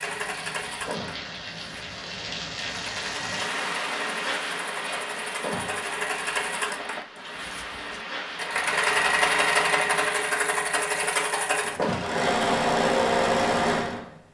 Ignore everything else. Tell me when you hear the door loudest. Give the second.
12 s.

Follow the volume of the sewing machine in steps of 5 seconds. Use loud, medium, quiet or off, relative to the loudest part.
medium, loud, loud.